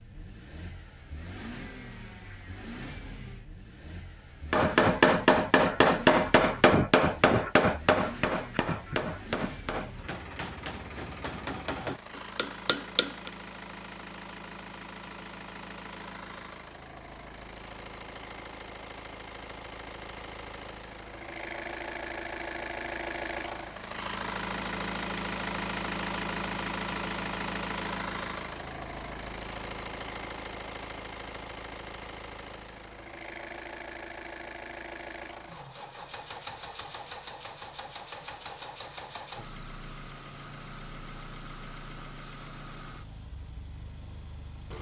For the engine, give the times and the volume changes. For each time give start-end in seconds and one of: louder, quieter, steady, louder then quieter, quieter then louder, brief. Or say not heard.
0.0-44.7 louder then quieter.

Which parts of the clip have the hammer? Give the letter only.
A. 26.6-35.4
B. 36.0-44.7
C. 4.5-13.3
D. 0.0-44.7
C.